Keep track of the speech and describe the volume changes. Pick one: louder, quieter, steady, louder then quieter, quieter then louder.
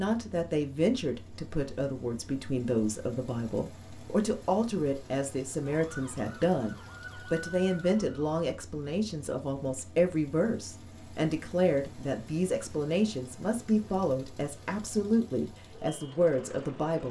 steady.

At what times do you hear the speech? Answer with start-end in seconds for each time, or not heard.
0.0-17.0.